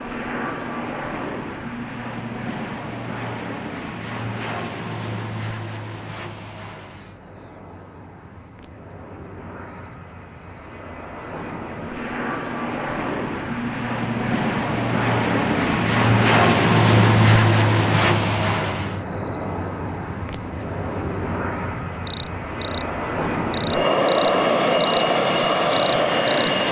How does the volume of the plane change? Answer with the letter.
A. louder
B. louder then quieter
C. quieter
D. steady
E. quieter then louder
E.